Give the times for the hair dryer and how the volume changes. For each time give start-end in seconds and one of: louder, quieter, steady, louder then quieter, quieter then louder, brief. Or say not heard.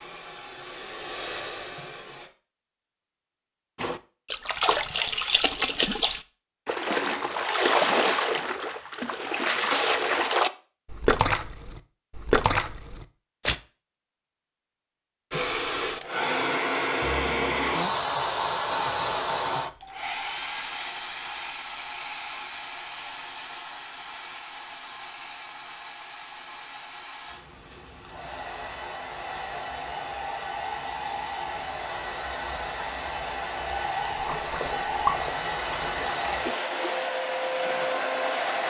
0.0-2.3 brief
15.3-38.6 quieter then louder.